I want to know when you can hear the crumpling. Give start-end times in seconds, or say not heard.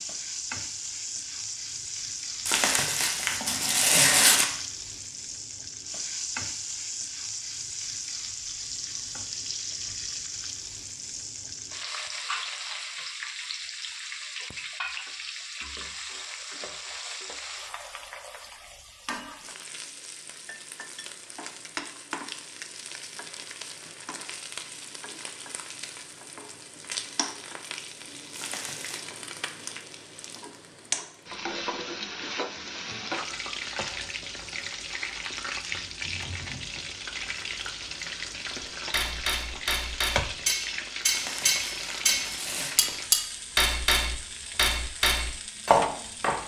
2.5-4.5, 28.4-29.1, 41.0-42.8.